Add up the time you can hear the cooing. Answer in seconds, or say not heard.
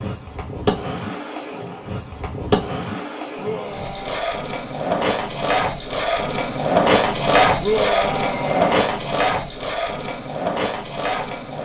not heard.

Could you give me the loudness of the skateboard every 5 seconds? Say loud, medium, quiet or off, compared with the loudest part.
medium, loud, medium.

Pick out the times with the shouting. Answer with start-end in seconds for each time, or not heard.
3.4-4.2, 7.6-8.7.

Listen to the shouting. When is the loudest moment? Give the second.
8 s.